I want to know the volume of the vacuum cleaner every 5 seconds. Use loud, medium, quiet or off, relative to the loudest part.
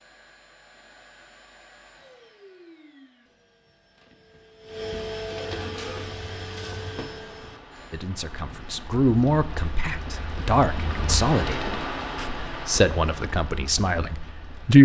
medium, loud, off.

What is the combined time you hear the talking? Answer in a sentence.
You can hear the talking for 7 seconds altogether.